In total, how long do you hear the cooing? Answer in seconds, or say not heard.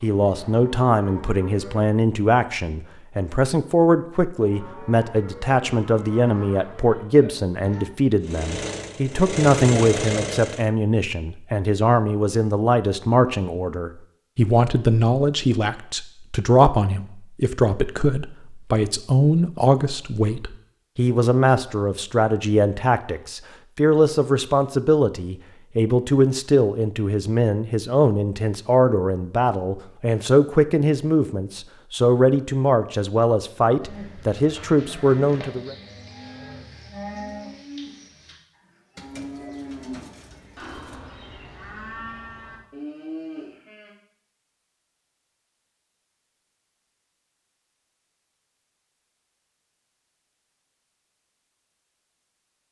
2 s.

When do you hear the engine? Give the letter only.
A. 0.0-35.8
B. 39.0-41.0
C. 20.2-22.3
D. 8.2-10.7
D.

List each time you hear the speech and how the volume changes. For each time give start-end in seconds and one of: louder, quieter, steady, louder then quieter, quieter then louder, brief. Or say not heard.
0.0-35.8 steady.